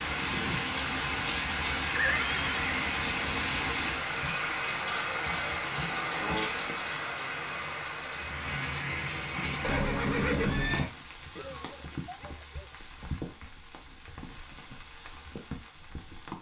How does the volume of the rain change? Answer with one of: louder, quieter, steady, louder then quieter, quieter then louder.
quieter.